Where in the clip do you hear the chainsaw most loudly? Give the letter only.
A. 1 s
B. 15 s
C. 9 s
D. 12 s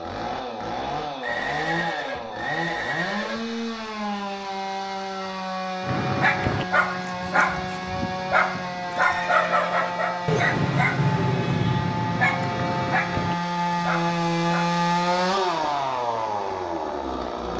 B.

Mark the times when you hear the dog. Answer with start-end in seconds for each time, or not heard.
5.8-14.7.